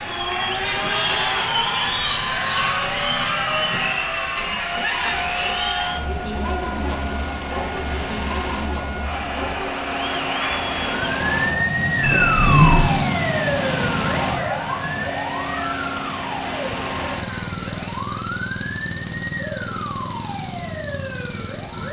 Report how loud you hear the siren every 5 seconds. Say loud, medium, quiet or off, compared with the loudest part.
medium, medium, loud, medium, medium.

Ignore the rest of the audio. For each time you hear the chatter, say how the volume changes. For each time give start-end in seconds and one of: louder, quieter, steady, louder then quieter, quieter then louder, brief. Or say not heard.
0.0-11.7 quieter.